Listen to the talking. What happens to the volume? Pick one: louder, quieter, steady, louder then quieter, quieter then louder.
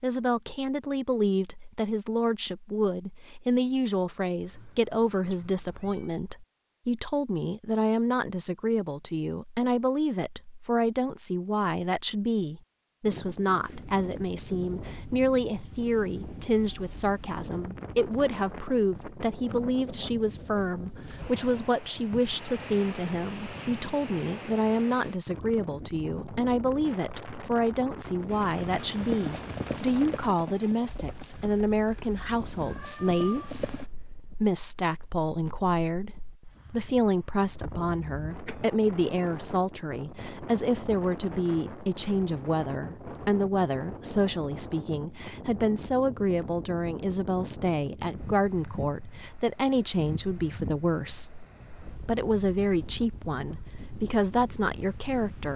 steady.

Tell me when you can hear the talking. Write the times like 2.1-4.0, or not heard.
0.0-55.5.